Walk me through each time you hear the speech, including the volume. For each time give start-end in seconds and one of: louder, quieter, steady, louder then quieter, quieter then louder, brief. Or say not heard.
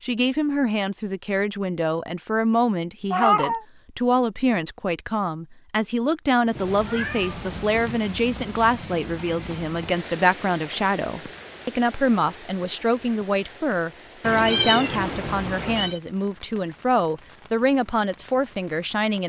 0.0-19.2 steady.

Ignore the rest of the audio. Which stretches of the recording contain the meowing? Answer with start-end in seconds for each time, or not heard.
3.1-3.6, 6.5-8.0, 14.2-16.0.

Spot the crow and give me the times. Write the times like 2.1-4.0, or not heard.
not heard.